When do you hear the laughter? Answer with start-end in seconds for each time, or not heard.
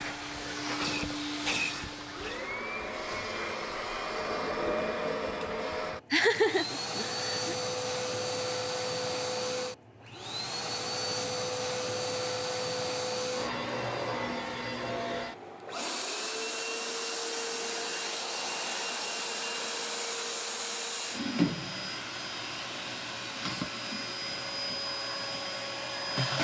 6.1-7.5.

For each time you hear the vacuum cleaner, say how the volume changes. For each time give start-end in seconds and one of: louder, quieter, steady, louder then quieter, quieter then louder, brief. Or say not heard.
0.0-26.3 steady.